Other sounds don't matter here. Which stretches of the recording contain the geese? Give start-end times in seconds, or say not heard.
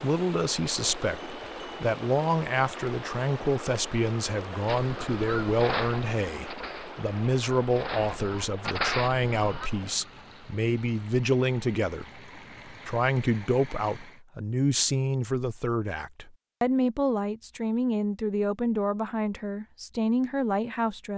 4.7-9.7.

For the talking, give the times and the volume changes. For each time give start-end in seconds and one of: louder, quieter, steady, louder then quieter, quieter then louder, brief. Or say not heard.
0.0-21.1 steady.